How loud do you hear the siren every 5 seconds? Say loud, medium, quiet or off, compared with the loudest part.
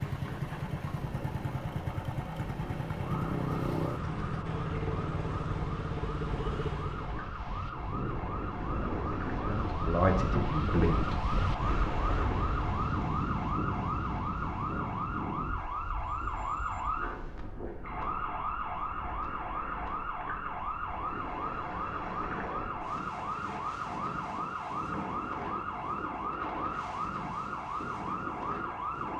medium, medium, loud, loud, loud, loud.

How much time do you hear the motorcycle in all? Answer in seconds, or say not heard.
7 s.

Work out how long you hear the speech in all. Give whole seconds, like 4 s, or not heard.
2 s.